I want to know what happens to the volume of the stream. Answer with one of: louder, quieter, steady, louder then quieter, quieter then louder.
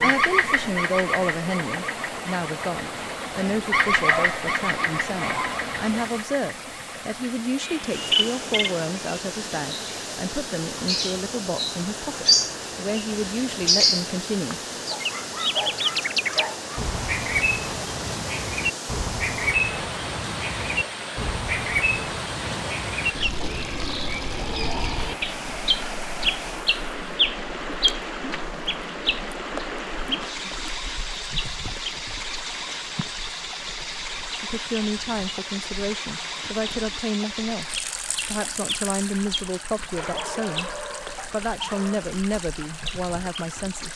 steady.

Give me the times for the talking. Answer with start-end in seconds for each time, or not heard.
0.0-14.6, 34.4-43.9.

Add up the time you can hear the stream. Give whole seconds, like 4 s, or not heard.
44 s.